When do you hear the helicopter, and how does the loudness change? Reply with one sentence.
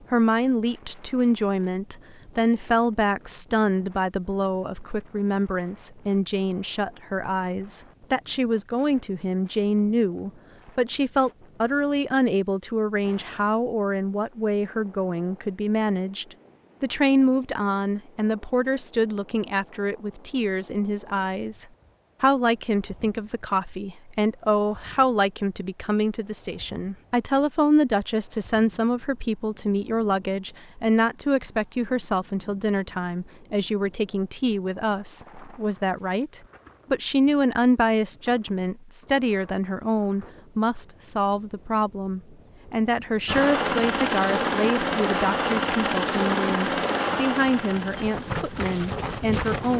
The helicopter can be heard from 43.2 to 49.7 s, getting quieter.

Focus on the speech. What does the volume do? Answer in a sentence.
The volume of the speech stays about the same.